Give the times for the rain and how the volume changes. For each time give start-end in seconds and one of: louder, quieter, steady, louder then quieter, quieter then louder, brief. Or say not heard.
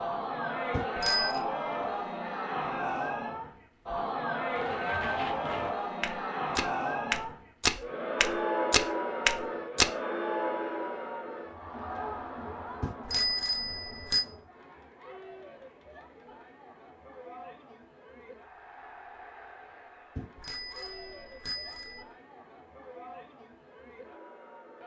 not heard.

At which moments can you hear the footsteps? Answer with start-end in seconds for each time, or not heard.
4.5-9.9.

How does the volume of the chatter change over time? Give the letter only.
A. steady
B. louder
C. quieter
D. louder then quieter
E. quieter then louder
C.